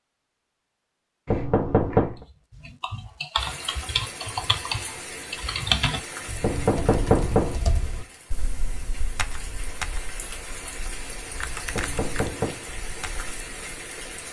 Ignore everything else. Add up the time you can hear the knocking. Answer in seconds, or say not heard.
3 s.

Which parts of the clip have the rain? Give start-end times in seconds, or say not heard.
3.4-14.2.